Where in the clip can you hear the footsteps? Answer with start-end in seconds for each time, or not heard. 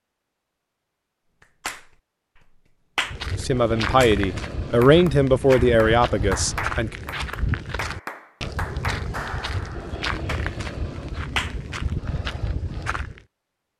3.0-13.2.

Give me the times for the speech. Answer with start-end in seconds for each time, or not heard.
3.4-7.0.